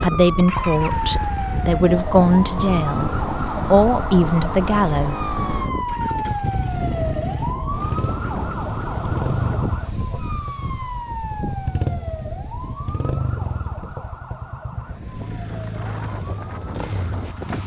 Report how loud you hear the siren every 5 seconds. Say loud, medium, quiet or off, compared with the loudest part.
loud, loud, medium, quiet.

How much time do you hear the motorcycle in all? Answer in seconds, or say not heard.
17 s.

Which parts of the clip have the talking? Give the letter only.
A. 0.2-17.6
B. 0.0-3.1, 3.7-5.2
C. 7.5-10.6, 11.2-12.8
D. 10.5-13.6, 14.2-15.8
B.